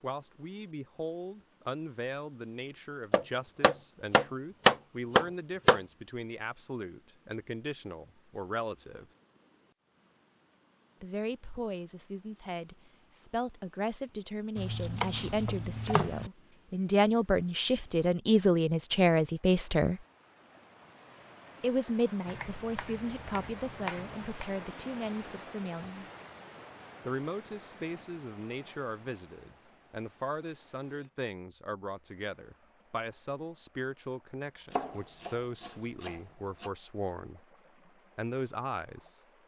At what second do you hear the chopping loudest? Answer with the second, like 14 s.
5 s.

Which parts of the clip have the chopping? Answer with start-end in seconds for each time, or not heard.
3.1-5.8, 14.6-16.3, 22.2-24.4, 34.7-36.7.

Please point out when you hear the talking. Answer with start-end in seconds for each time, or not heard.
0.0-9.1, 11.0-20.0, 21.6-26.1, 27.0-37.5, 38.1-39.2.